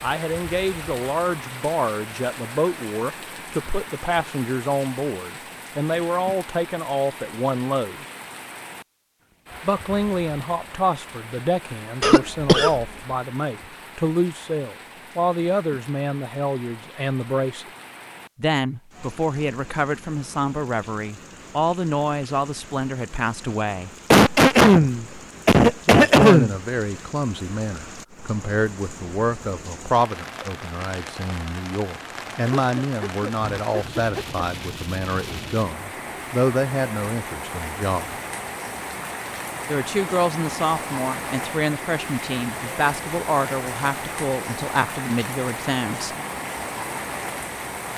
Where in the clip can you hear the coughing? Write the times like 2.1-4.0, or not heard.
12.0-12.9, 24.1-26.6, 32.5-34.4.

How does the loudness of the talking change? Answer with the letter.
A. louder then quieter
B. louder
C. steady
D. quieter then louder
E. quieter
C.